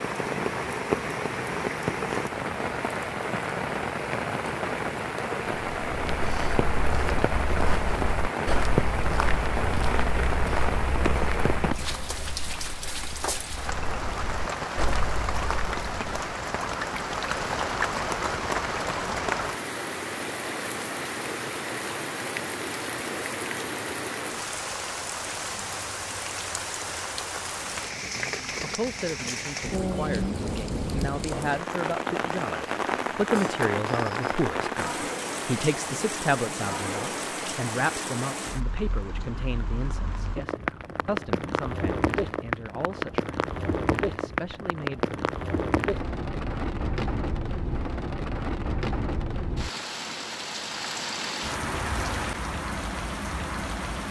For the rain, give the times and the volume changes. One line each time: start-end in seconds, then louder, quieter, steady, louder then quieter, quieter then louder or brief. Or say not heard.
0.0-54.0 steady.